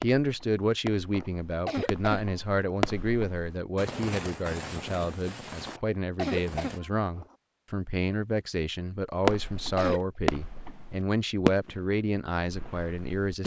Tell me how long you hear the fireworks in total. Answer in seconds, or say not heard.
11 s.